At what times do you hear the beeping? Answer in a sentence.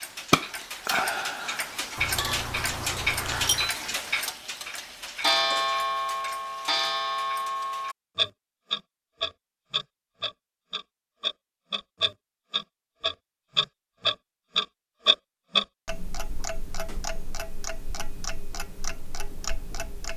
The beeping can be heard from 1.9 to 3.8 s.